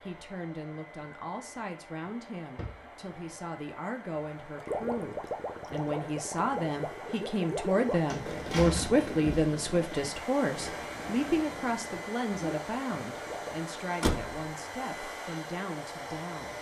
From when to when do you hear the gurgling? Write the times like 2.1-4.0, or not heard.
4.5-13.6.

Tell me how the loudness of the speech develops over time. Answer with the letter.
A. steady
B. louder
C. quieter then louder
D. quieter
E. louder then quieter
E.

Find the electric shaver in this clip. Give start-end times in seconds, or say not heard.
not heard.